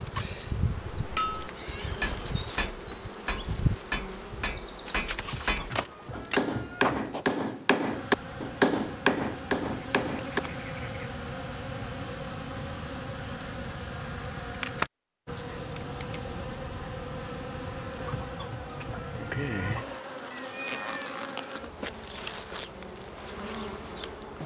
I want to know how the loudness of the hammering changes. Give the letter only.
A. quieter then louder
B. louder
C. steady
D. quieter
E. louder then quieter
B.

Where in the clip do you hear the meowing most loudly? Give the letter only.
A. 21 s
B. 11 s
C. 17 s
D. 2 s
A.